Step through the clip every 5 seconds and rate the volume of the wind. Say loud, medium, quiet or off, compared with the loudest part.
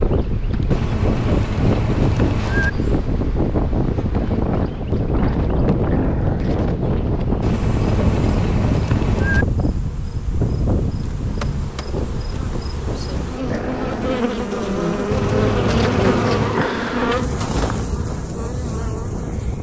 loud, loud, medium, medium.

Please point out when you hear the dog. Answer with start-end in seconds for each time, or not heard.
5.8-6.6, 13.4-14.3.